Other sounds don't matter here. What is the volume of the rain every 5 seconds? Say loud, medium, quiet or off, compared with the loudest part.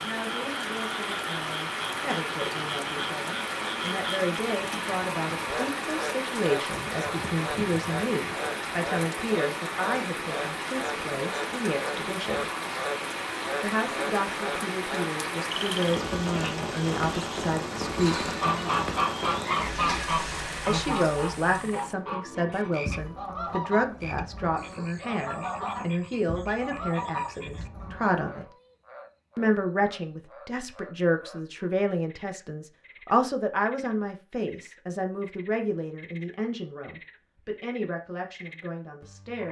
loud, loud, loud, loud, medium, off, off, off.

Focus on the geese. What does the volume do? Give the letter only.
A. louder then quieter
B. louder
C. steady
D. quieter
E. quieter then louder
D.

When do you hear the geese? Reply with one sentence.
You can hear the geese from 18.4 to 28.2 s.